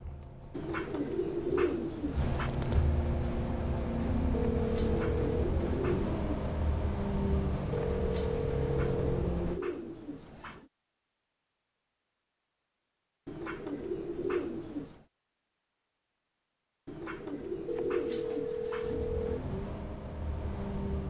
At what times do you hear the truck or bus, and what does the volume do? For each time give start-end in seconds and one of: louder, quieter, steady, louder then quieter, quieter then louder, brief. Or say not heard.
0.0-9.6 louder
18.8-21.0 brief.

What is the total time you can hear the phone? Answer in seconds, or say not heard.
5 s.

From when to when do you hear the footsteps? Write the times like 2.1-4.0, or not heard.
not heard.